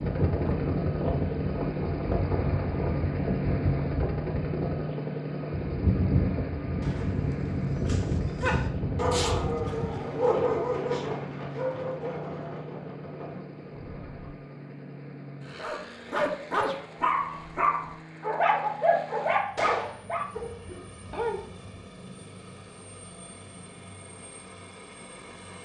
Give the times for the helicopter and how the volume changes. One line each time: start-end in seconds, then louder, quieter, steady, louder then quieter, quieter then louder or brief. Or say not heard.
0.0-25.6 quieter.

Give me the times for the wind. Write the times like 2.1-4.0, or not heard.
0.0-14.3.